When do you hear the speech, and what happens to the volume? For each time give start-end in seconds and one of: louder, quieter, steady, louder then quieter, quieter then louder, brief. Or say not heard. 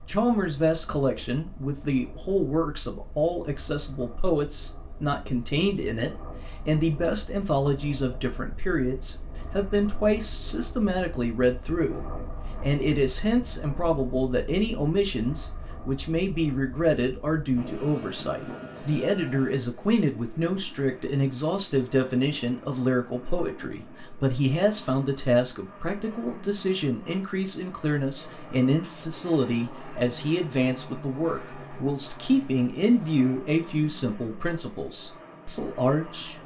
0.1-36.4 steady.